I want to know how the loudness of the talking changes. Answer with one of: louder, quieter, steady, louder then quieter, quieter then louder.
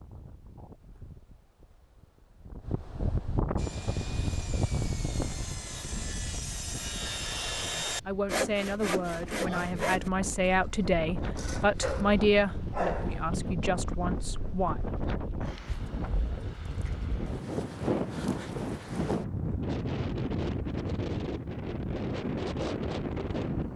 louder then quieter.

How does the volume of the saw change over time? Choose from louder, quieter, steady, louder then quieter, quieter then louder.
louder then quieter.